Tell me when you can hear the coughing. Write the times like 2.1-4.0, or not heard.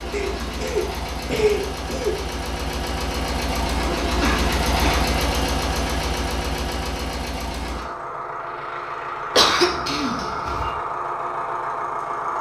0.1-2.2, 4.2-5.0, 9.3-10.8.